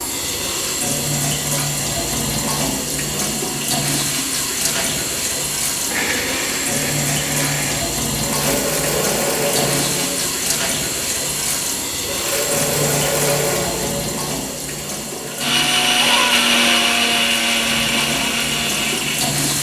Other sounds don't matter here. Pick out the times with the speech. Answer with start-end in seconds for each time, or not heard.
not heard.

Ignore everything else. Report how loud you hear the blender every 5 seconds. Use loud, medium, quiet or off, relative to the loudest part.
off, medium, medium, loud.